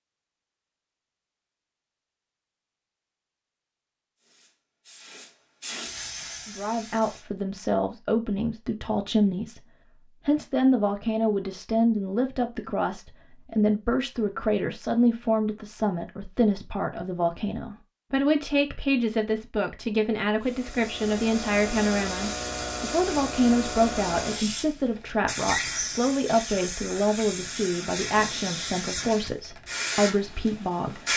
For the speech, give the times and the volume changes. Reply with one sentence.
You can hear the speech from 6.5 to 31.1 s, at a steady volume.